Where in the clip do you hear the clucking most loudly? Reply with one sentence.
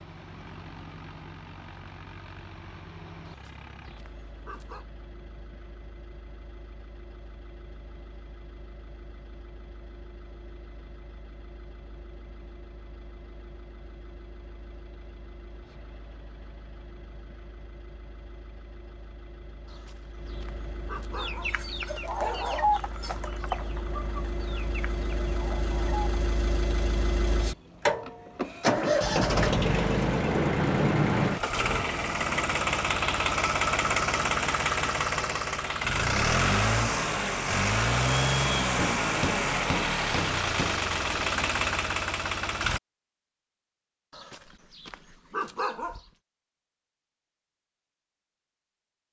The loudest moment of the clucking is at 23 seconds.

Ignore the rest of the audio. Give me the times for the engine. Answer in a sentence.
You can hear the engine from 0.0 to 42.8 s.